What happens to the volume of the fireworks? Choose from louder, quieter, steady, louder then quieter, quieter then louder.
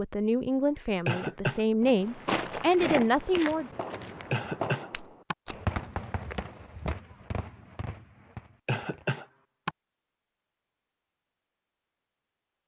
quieter.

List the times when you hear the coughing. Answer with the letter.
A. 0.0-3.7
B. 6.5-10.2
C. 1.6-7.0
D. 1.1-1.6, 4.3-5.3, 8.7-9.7
D.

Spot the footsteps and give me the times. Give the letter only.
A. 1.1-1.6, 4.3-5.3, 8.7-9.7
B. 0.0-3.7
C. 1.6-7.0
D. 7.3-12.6
C.